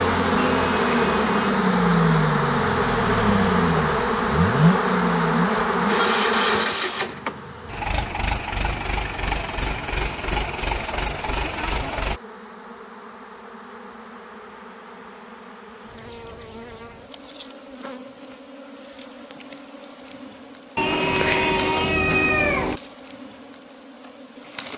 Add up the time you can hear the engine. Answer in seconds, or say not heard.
12 s.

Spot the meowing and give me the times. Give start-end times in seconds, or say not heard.
0.6-1.5, 20.8-22.8.